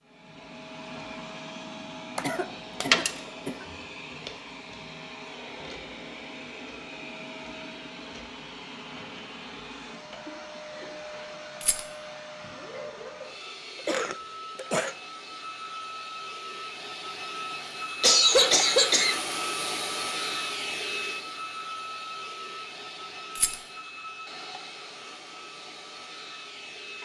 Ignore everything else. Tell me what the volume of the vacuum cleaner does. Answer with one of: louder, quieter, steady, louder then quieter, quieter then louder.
louder then quieter.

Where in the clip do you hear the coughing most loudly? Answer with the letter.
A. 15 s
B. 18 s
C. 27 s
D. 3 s
B.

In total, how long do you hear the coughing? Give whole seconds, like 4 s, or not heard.
4 s.